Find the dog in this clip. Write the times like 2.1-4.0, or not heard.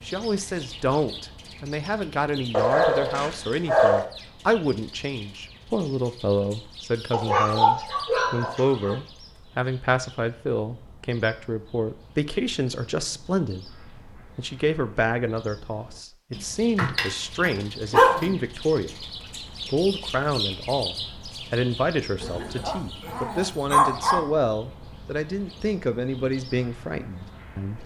2.5-4.0, 7.1-8.9, 16.4-18.4, 22.2-24.2.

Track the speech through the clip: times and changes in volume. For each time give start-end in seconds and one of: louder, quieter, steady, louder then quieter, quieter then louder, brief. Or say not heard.
0.0-27.8 steady.